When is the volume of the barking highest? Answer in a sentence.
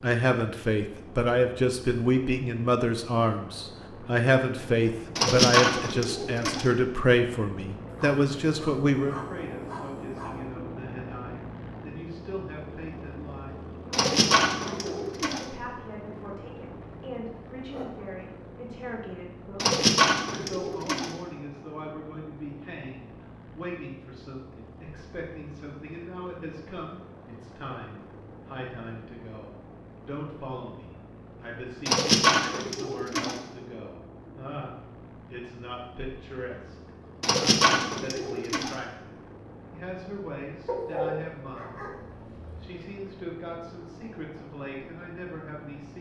The volume of the barking peaks at 41 seconds.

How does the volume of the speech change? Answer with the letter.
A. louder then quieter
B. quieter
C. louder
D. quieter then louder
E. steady
B.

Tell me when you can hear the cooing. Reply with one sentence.
The cooing can be heard from 5.2 to 6.7 s, from 13.9 to 15.4 s, from 19.6 to 21.1 s, from 31.9 to 33.4 s and from 37.2 to 38.8 s.